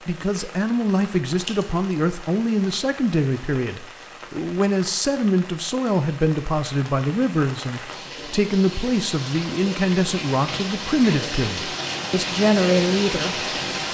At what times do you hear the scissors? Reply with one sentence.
The scissors can be heard from 1.4 to 1.9 s.